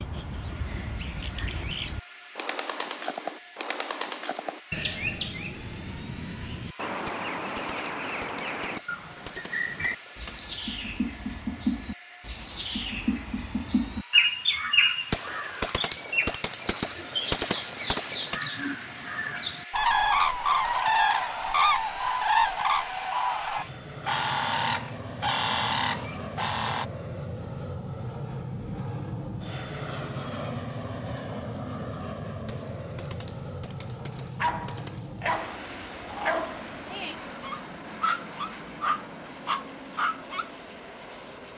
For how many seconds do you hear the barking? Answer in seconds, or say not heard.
6 s.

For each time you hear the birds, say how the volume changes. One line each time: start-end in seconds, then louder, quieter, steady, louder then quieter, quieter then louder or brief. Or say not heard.
0.0-26.9 louder.